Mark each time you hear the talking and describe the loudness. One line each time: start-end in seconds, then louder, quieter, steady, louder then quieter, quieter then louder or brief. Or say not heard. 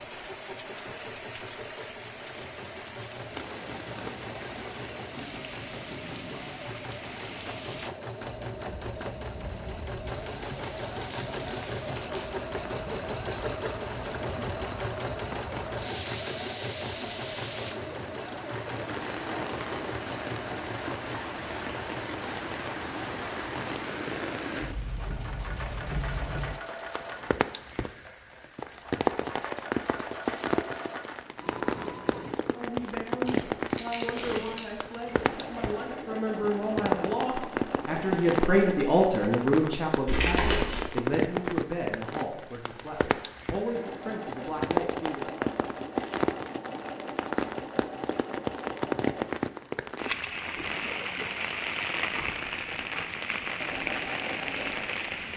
32.5-45.4 louder then quieter.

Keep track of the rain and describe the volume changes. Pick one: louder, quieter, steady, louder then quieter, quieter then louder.
louder.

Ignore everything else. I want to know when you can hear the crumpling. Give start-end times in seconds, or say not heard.
10.8-12.3, 33.2-34.6, 40.0-40.9.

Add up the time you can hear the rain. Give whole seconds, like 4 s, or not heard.
55 s.